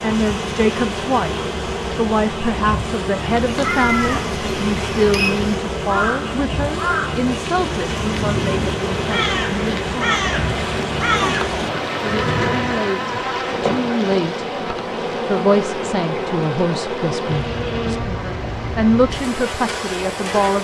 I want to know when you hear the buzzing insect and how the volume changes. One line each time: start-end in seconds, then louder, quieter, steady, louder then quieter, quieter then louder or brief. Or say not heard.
0.0-20.5 steady.